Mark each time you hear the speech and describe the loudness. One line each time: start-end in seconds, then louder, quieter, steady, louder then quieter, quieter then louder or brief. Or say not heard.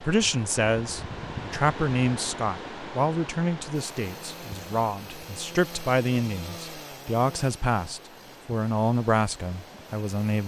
0.0-10.4 steady.